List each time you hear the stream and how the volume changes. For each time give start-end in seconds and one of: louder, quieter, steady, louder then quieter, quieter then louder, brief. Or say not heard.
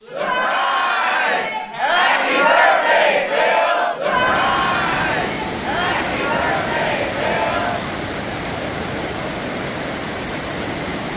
4.1-11.1 steady.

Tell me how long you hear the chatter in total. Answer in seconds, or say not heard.
8 s.